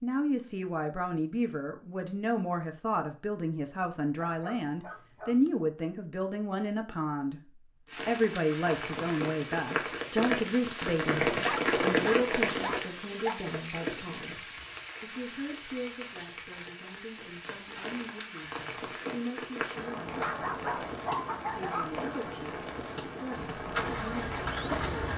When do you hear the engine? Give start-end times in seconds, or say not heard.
23.4-25.1.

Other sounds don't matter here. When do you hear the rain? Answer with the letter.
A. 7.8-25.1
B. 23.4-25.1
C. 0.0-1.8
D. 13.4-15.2
A.